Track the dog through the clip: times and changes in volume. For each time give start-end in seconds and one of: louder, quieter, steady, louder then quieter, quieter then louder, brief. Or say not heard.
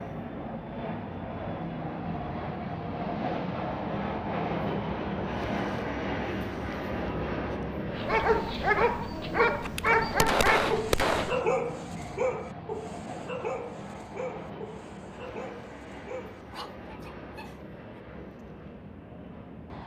8.0-18.0 quieter.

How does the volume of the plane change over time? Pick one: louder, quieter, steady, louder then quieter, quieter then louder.
quieter.